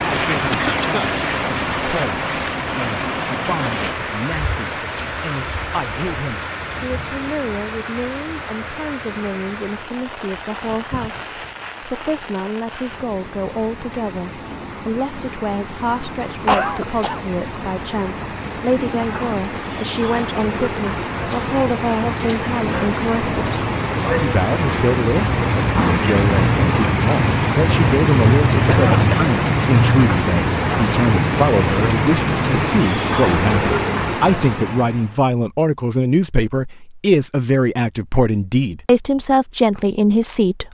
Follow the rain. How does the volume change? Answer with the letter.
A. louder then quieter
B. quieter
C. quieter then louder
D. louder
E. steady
C.